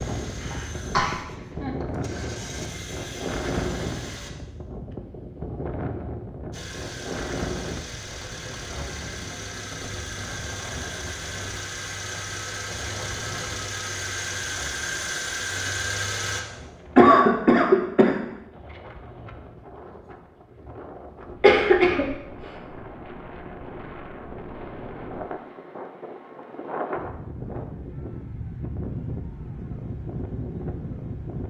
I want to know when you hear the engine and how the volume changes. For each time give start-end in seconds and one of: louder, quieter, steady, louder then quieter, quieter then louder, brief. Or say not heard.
0.0-4.3 quieter then louder
6.5-16.4 louder.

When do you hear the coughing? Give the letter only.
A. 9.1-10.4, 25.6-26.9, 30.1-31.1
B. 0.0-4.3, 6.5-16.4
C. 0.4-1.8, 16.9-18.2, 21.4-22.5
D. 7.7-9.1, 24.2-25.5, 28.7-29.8
C.